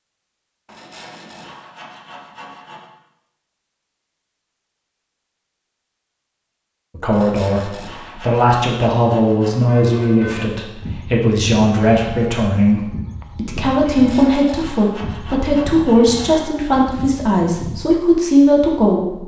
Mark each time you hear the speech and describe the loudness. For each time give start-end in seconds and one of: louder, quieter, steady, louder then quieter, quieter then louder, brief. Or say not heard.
7.0-19.2 steady.